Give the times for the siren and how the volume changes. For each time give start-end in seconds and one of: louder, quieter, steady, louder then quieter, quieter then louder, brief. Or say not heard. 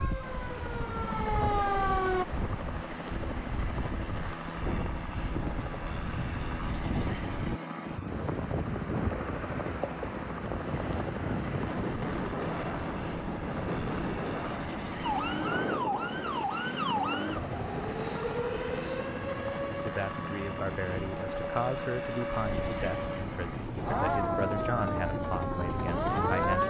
0.0-2.2 brief
15.0-26.6 quieter then louder.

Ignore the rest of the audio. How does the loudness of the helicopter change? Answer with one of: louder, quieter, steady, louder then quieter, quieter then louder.
steady.